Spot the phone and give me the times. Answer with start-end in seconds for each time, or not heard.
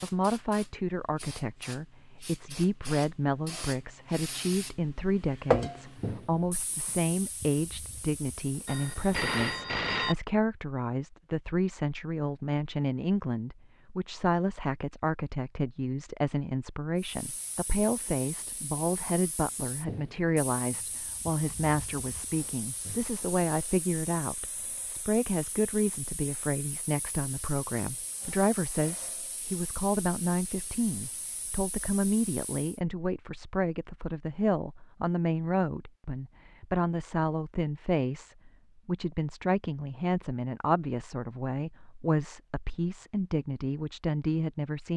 8.7-10.2.